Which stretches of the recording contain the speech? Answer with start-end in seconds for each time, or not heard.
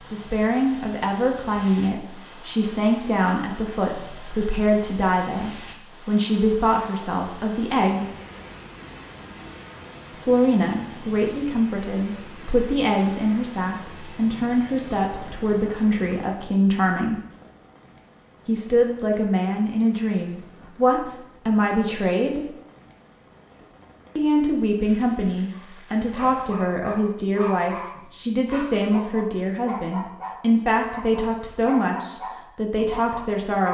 0.1-8.1, 10.2-17.2, 18.4-22.4, 24.1-33.6.